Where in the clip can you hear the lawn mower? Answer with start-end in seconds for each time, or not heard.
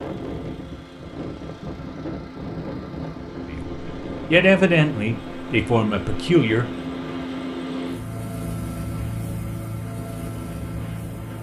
0.0-11.3.